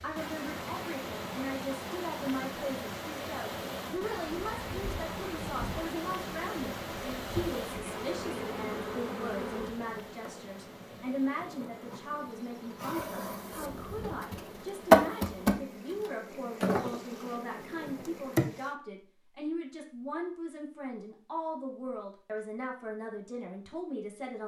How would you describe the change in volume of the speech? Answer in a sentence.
The volume of the speech stays about the same.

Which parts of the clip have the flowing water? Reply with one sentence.
You can hear the flowing water from 0.0 to 18.8 s.